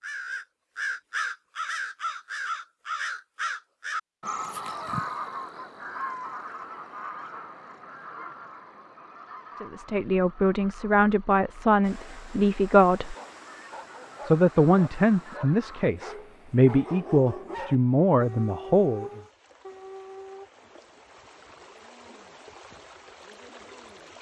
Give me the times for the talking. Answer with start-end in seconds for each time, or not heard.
9.6-13.2, 14.2-19.2.